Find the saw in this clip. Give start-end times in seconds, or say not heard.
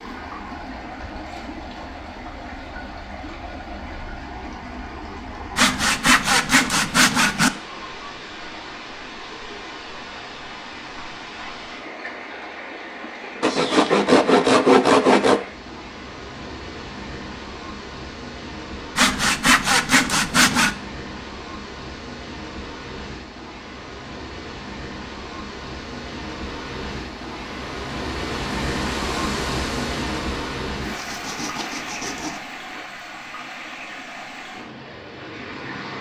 5.5-7.5, 13.4-15.4, 18.9-20.8, 30.9-32.4.